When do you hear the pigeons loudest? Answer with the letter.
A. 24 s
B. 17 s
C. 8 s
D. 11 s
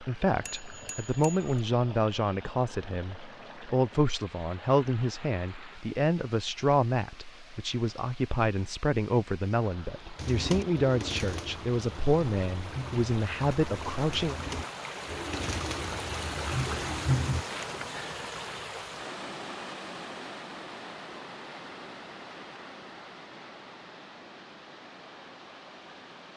B.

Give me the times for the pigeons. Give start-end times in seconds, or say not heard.
10.2-17.4.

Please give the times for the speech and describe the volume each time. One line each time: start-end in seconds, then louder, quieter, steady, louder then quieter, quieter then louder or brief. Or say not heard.
0.0-14.3 steady.